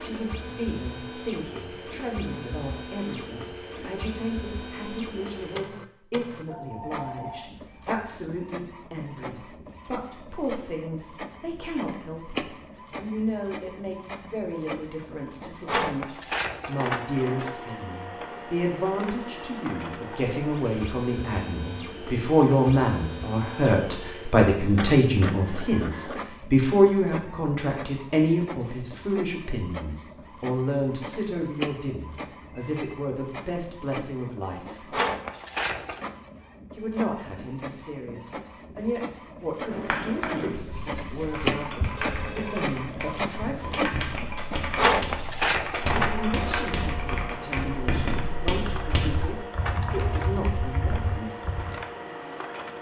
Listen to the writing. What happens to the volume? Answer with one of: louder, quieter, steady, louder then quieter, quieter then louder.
quieter then louder.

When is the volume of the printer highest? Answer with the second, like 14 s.
45 s.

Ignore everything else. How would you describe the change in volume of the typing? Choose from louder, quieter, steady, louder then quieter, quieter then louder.
steady.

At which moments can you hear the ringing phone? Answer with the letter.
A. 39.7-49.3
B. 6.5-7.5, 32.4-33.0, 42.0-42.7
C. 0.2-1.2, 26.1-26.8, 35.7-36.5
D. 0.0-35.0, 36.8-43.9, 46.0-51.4
B.